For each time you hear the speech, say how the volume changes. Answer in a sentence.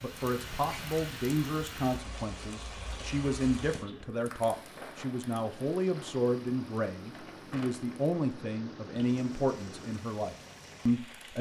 The speech can be heard from 0.0 to 11.3 s, at a steady volume.